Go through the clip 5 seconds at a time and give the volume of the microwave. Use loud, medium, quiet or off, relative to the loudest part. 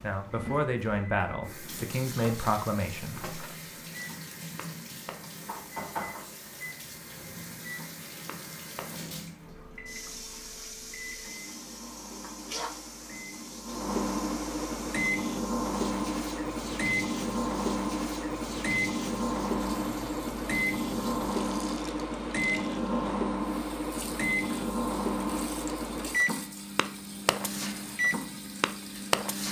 quiet, quiet, medium, loud, loud, loud.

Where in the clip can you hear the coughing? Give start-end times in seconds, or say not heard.
not heard.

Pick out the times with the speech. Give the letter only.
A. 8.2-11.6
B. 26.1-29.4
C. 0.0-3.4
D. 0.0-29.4
C.